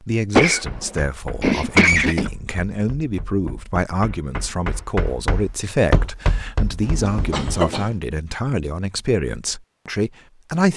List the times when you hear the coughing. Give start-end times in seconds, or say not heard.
0.3-2.3, 6.8-7.9.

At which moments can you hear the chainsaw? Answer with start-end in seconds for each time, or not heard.
not heard.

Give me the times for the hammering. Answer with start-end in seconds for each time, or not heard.
0.5-7.6.